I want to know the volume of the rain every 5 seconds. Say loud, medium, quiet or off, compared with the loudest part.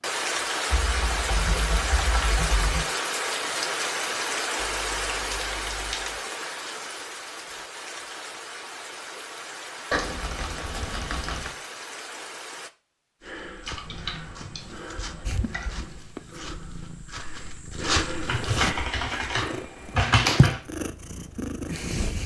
loud, medium, medium, off, off.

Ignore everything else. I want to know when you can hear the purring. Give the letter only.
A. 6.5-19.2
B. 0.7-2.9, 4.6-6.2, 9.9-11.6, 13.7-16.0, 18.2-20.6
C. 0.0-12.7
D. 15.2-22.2
D.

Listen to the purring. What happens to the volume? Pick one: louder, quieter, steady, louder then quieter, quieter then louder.
louder then quieter.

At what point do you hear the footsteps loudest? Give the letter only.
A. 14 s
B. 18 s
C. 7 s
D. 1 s
B.